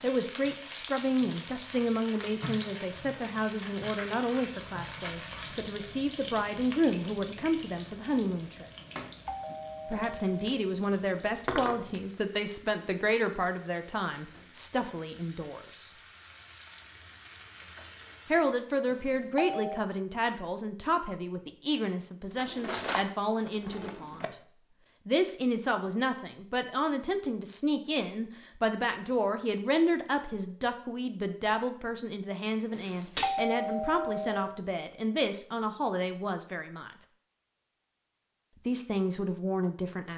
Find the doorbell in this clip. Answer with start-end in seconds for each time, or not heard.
8.8-10.3, 18.9-19.9, 32.7-34.5.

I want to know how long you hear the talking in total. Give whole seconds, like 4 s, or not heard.
34 s.